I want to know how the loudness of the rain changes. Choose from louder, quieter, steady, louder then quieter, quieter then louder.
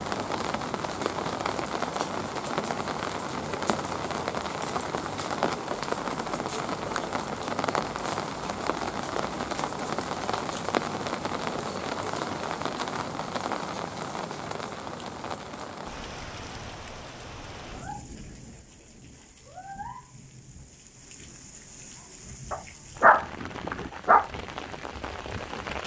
quieter.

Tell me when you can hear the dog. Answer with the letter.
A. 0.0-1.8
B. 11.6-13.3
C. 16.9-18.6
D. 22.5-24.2
D.